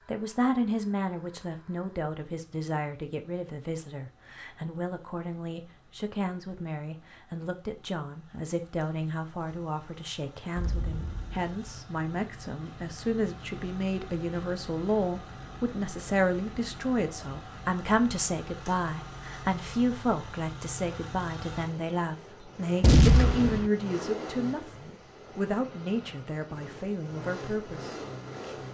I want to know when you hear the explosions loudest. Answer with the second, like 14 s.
23 s.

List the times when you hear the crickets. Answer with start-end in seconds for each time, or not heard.
not heard.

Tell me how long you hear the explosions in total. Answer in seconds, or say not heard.
2 s.